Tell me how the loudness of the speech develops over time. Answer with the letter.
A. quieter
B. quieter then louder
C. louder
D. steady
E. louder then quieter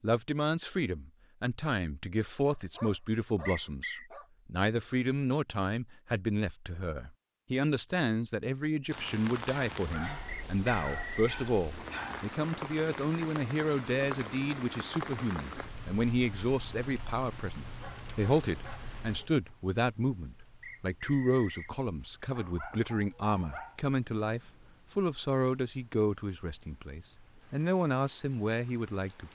D.